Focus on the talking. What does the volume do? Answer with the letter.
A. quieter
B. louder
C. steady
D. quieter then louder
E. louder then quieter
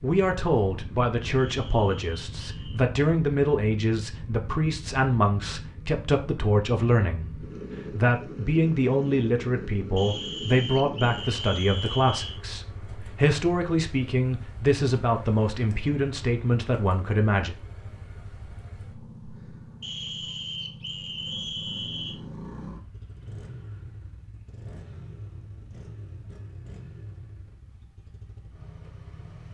C.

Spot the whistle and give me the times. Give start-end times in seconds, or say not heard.
1.4-2.8, 9.9-12.4, 19.8-22.2.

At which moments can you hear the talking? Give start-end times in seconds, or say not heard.
0.0-17.6.